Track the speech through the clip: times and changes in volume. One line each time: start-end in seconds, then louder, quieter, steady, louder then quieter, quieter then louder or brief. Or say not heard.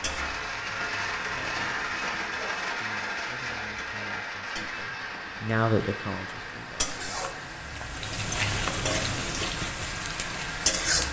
2.6-7.3 louder then quieter.